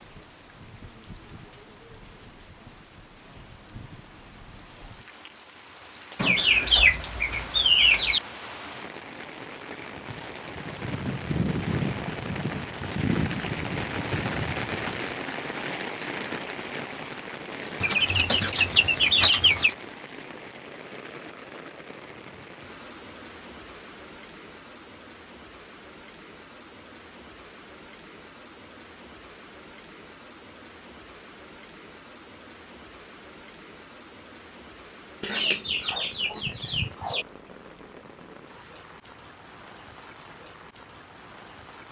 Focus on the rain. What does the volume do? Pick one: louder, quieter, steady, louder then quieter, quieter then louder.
louder then quieter.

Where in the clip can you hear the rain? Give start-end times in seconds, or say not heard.
0.0-41.8.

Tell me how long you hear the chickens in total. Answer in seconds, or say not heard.
6 s.